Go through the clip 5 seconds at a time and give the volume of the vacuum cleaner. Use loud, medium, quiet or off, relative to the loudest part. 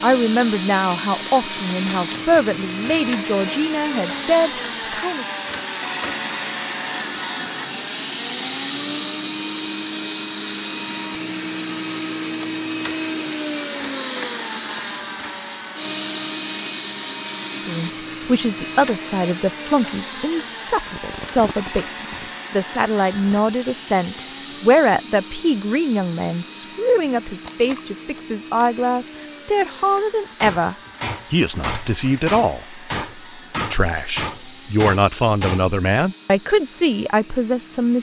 loud, loud, loud, loud, medium, medium, quiet, quiet.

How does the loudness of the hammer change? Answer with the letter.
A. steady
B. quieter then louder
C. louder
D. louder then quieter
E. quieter
A.